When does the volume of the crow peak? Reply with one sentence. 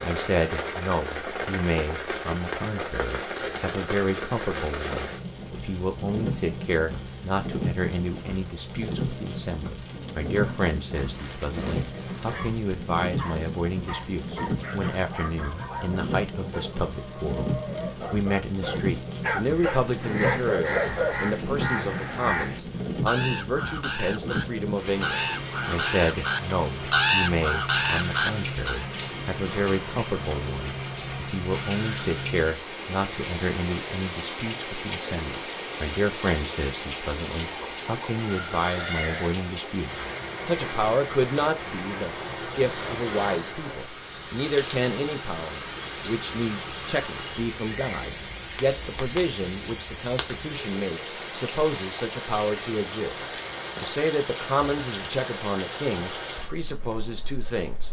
The volume of the crow peaks at 27 seconds.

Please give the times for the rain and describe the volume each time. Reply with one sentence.
You can hear the rain from 0.0 to 57.8 s, at a steady volume.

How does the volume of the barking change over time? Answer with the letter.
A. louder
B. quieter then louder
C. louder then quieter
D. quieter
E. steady
A.